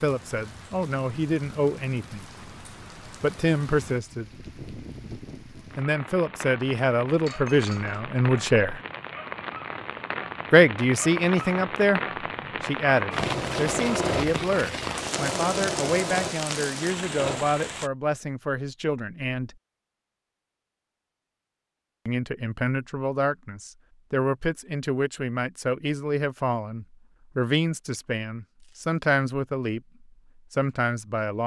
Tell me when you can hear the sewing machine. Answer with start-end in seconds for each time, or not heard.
13.1-17.4.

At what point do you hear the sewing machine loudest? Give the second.
14 s.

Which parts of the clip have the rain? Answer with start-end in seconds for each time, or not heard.
0.0-17.9.